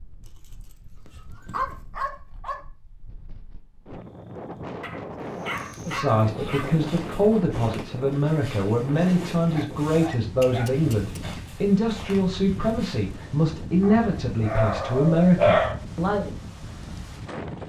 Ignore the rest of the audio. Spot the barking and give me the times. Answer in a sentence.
The barking can be heard from 0.2 to 2.6 s, from 4.8 to 6.8 s, from 9.5 to 11.3 s and from 13.8 to 15.8 s.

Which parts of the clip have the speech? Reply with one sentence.
You can hear the speech from 5.8 to 16.3 s.